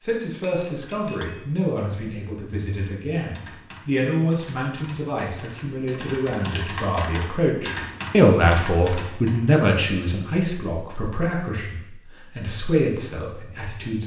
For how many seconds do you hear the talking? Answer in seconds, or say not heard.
14 s.